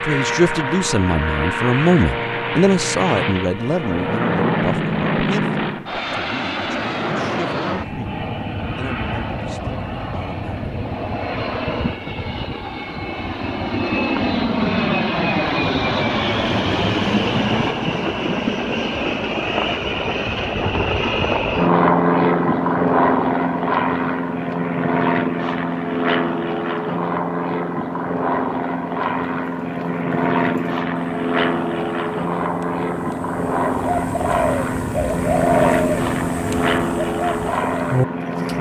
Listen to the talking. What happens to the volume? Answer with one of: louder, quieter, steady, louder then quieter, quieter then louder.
quieter.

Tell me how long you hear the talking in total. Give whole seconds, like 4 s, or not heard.
11 s.